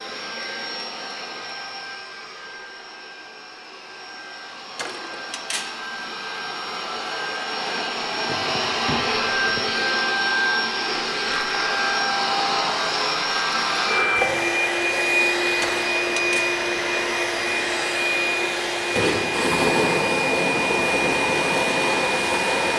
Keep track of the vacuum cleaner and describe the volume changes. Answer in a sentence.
The loudness of the vacuum cleaner goes up.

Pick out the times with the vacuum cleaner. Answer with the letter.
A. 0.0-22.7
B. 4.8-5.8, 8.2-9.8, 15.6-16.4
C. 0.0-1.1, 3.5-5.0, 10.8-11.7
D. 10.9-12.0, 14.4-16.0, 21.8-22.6
A.